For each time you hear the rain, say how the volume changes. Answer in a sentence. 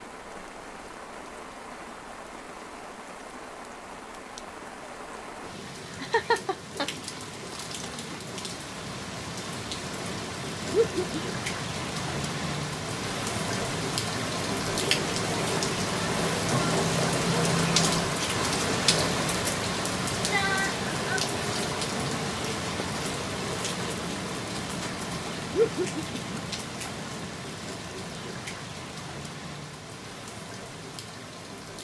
The rain can be heard from 0.0 to 31.7 s, getting louder then quieter.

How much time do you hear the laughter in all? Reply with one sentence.
The laughter can be heard for 2 seconds in total.